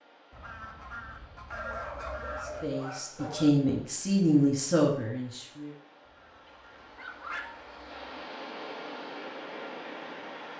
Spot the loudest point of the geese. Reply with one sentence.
The loudest moment of the geese is at 2 seconds.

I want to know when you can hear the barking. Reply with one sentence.
The barking can be heard from 1.5 to 3.5 s and from 6.5 to 7.7 s.